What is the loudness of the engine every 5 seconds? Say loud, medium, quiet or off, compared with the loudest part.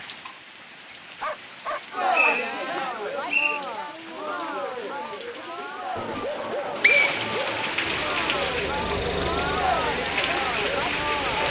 off, loud, medium.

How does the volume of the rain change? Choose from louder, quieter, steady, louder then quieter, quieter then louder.
louder.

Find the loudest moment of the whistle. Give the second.
7 s.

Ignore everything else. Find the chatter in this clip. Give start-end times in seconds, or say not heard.
1.9-11.4.